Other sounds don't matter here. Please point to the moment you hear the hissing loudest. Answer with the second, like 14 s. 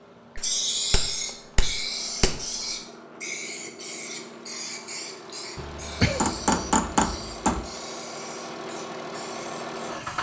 1 s.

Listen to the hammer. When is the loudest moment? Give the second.
7 s.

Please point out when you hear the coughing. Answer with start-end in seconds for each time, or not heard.
5.5-6.3.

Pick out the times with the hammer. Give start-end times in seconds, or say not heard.
0.3-2.5, 6.2-7.7.